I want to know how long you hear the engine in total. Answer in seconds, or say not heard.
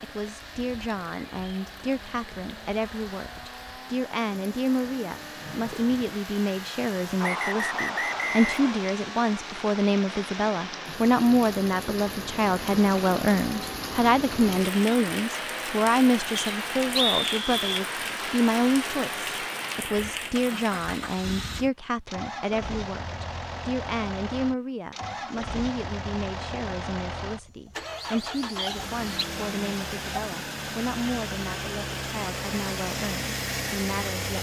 34 s.